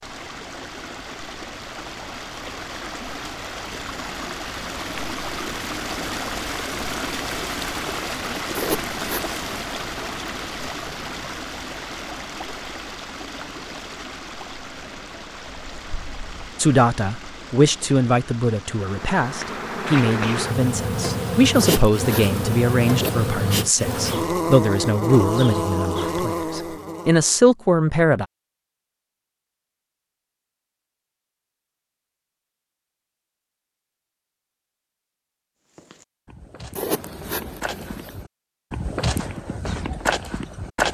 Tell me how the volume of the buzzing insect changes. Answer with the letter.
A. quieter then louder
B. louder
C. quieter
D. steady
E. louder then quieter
D.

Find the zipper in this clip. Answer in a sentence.
You can hear the zipper from 8.6 to 9.7 s, from 21.6 to 23.1 s and from 36.8 to 38.2 s.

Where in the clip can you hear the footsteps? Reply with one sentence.
You can hear the footsteps from 35.8 to 40.8 s.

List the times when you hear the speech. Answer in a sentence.
You can hear the speech from 16.6 to 28.2 s.